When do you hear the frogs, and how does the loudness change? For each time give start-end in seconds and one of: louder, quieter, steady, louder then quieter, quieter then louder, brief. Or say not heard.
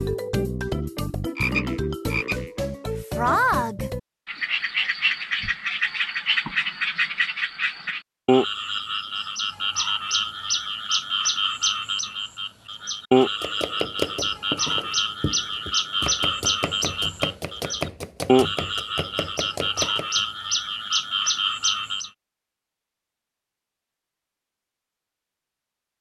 0.0-22.1 steady.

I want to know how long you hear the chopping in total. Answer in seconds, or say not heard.
7 s.